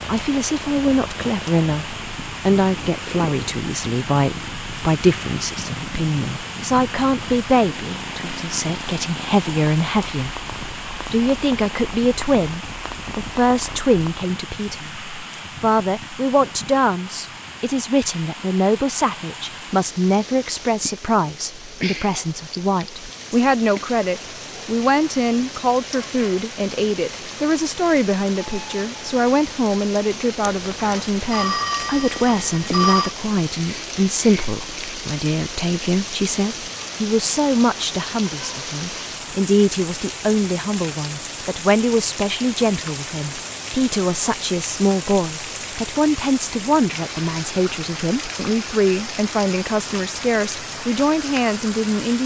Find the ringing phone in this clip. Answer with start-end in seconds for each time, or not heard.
30.4-33.1.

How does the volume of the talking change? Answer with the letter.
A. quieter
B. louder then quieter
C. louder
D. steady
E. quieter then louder
D.